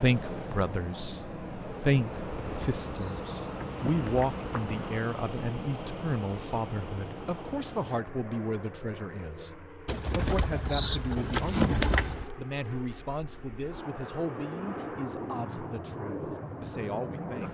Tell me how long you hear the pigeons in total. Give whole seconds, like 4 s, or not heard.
5 s.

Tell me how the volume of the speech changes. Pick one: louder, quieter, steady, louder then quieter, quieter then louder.
quieter.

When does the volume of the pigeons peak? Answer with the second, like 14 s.
12 s.